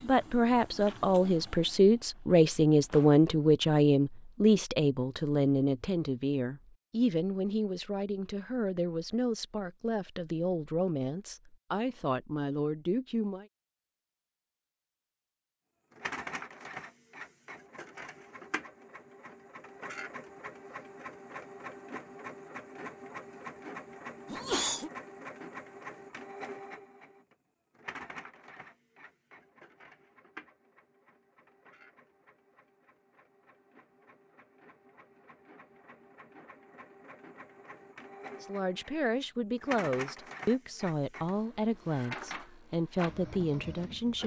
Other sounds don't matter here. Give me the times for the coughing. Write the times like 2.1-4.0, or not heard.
24.2-24.9.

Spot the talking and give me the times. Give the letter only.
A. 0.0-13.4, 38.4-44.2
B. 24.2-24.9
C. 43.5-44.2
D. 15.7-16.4
A.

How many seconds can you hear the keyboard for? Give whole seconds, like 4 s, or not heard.
not heard.